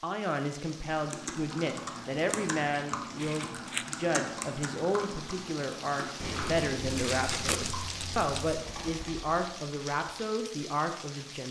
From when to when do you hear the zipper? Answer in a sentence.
The zipper can't be heard in this clip.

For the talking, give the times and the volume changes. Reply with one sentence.
The talking can be heard from 0.0 to 11.4 s, at a steady volume.